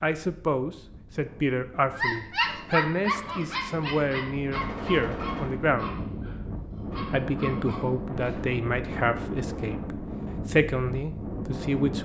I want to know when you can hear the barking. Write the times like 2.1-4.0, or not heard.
1.9-9.0.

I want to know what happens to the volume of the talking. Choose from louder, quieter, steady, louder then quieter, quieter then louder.
steady.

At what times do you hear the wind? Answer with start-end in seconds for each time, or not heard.
0.1-12.0.